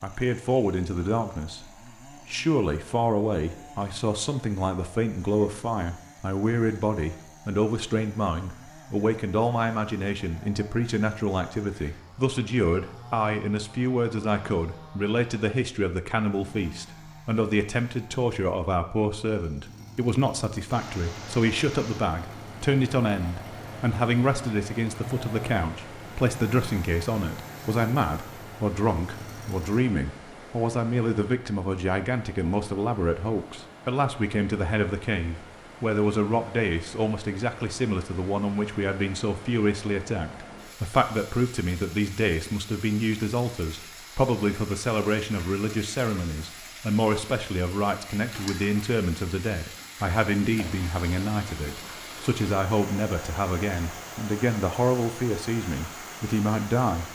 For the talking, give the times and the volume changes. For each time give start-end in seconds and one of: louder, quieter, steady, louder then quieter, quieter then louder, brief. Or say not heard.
0.0-57.1 steady.